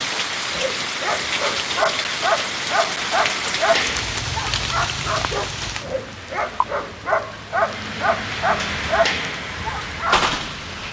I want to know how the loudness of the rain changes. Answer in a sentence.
The loudness of the rain goes down, then up.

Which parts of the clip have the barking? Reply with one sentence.
The barking can be heard from 0.5 to 10.2 s.